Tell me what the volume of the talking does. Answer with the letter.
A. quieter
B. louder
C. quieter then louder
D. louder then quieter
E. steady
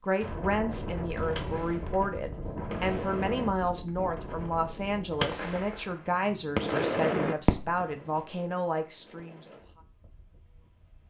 E.